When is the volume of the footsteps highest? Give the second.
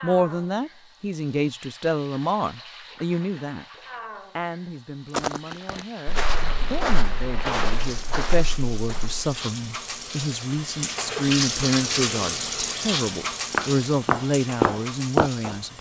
15 s.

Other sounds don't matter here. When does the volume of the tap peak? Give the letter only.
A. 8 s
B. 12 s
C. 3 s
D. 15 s
B.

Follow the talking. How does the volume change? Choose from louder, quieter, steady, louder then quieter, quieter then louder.
quieter then louder.